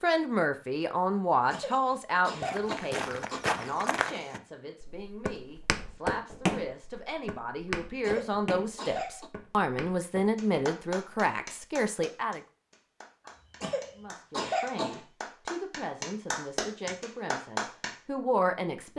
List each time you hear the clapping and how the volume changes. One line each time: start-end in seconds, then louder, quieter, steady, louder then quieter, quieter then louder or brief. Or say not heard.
10.3-17.9 quieter then louder.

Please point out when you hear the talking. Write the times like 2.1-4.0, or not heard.
0.0-12.4, 13.9-18.9.